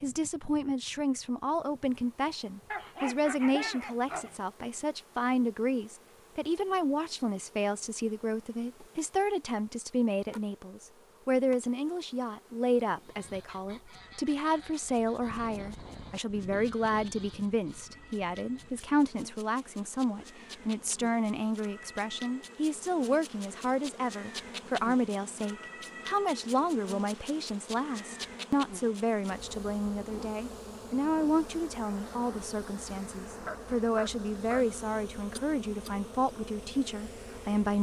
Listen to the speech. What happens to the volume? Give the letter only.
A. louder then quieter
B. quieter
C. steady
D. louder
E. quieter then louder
C.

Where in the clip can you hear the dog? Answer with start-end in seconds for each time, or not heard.
2.7-4.4, 33.5-35.0.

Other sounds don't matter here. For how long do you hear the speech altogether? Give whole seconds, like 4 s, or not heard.
38 s.